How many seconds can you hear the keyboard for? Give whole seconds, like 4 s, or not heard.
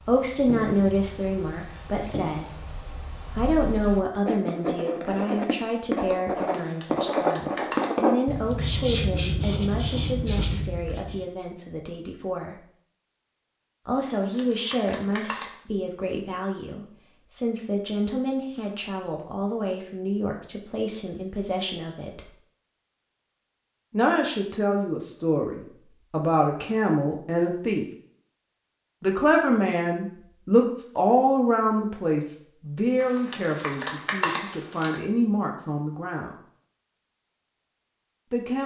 5 s.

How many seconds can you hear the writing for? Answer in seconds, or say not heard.
11 s.